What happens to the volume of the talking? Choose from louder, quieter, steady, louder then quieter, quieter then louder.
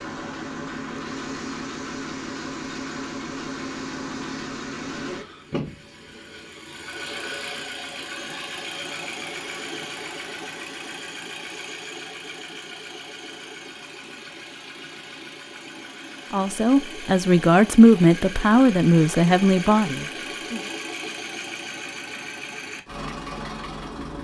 louder then quieter.